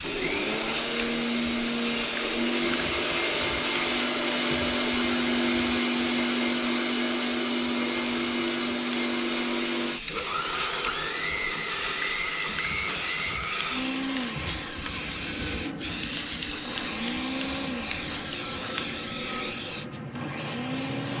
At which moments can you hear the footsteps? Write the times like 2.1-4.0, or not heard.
not heard.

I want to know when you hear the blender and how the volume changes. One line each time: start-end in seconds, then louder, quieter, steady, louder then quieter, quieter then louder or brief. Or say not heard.
0.0-21.1 quieter.